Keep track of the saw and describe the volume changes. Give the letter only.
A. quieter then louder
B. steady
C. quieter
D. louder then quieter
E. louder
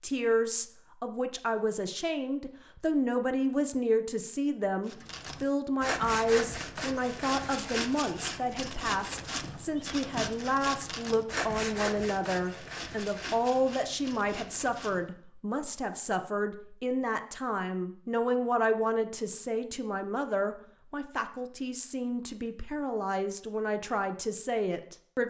C.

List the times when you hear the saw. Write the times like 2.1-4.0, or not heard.
4.8-15.1.